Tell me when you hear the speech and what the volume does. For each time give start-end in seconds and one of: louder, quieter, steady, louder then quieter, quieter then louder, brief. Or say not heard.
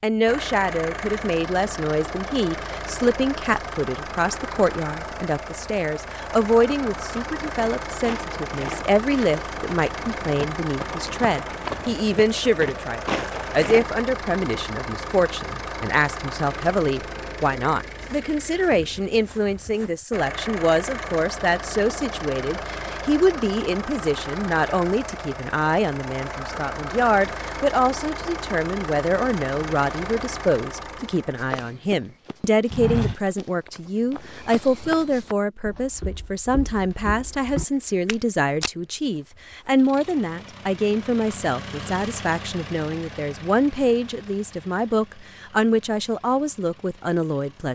0.0-47.7 steady.